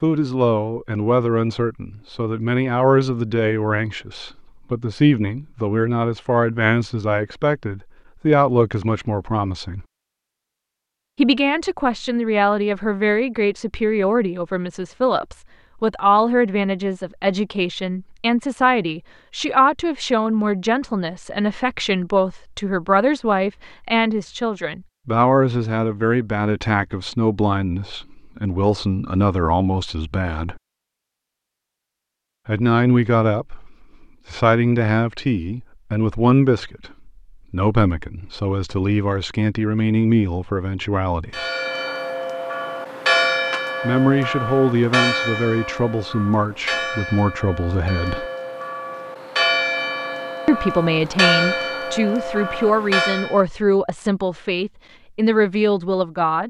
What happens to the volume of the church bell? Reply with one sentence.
The loudness of the church bell goes down, then up.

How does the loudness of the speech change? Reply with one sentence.
The loudness of the speech stays about the same.